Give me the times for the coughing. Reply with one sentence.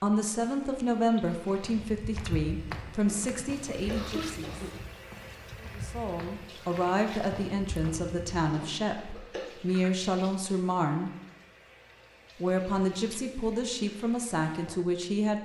You can hear the coughing from 3.0 to 4.8 s and from 8.4 to 9.4 s.